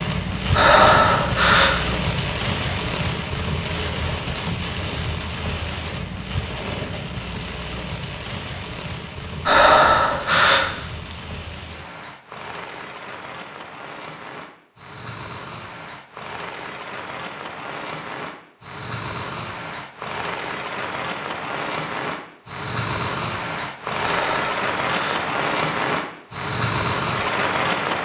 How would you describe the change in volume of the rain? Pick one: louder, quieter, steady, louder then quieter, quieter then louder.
quieter then louder.